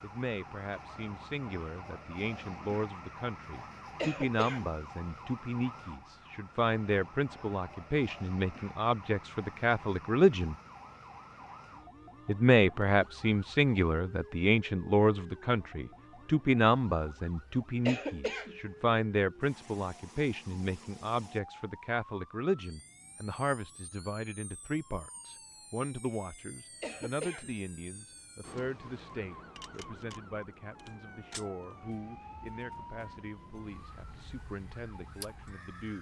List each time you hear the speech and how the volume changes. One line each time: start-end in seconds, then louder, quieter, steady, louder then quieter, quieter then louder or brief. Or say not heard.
0.0-10.6 louder
12.2-35.9 quieter.